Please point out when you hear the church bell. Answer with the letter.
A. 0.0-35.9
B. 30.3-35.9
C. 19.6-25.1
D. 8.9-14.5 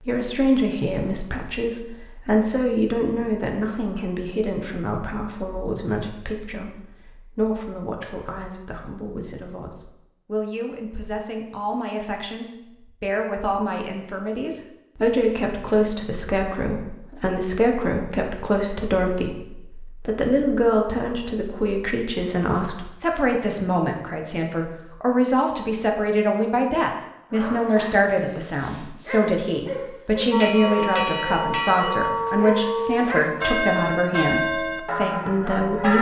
B.